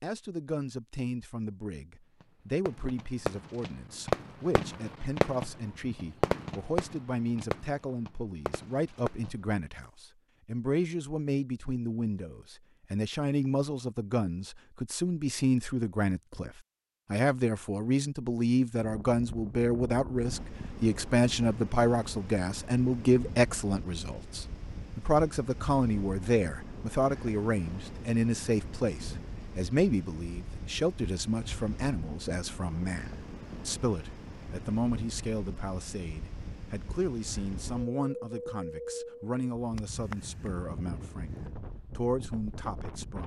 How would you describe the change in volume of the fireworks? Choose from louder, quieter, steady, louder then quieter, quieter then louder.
louder then quieter.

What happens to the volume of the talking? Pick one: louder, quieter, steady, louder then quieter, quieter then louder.
louder then quieter.